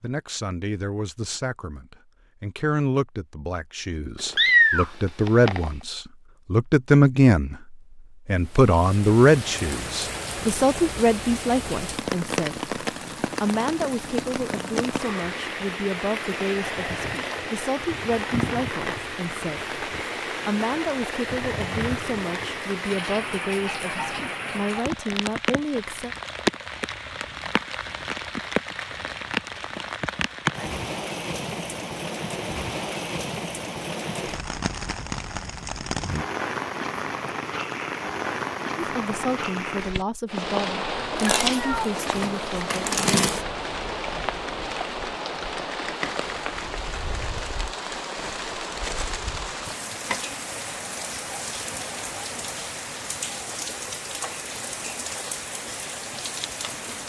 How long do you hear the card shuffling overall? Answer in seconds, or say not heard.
2 s.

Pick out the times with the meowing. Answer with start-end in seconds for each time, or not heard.
4.3-5.7, 41.0-41.9.